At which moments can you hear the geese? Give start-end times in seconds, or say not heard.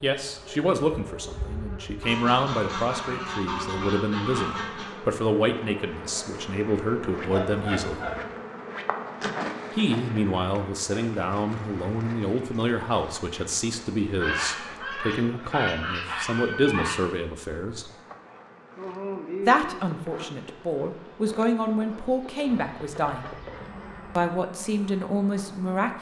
2.0-5.0, 7.2-8.2, 14.2-17.0, 22.4-24.3.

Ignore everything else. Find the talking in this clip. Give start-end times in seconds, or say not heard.
0.0-8.0, 9.8-17.9, 19.4-23.3, 24.1-25.9.